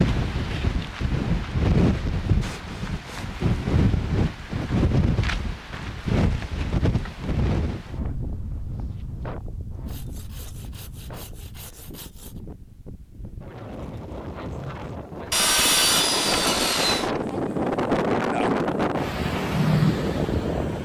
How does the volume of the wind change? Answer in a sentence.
The loudness of the wind goes down, then up.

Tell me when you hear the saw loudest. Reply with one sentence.
The loudest moment of the saw is at 16 seconds.